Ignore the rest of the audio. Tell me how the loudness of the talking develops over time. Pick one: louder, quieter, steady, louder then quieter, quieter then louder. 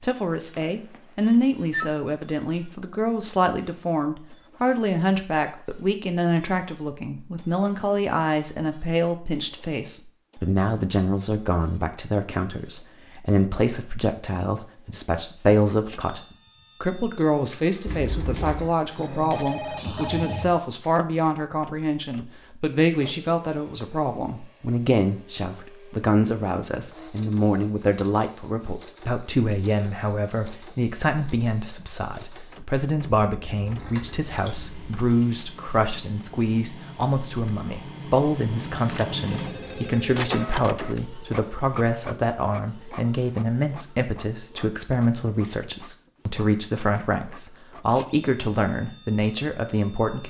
steady.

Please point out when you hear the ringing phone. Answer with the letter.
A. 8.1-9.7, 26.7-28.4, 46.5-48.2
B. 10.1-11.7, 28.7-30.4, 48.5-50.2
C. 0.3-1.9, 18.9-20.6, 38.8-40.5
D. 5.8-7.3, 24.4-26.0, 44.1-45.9
C.